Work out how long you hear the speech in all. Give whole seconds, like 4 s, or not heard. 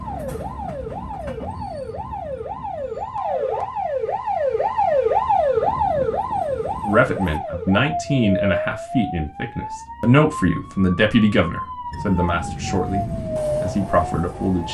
8 s.